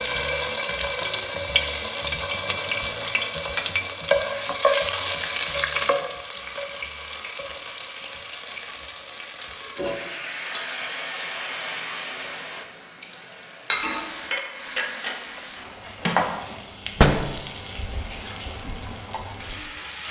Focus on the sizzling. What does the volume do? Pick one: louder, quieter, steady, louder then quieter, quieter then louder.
quieter.